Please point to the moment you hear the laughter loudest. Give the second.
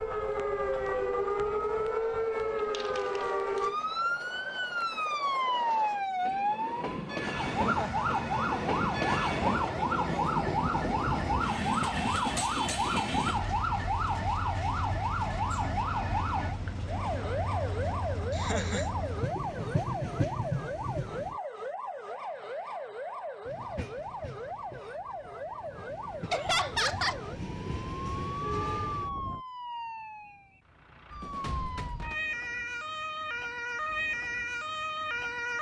27 s.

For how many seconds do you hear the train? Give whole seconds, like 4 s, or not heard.
27 s.